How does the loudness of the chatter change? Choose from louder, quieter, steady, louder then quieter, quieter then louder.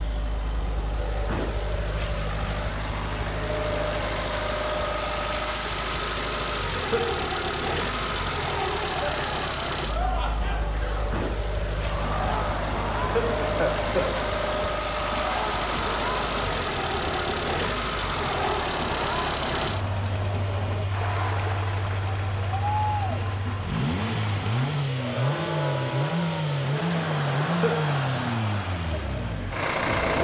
steady.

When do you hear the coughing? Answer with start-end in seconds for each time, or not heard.
6.7-7.2, 12.9-14.2, 27.4-28.0.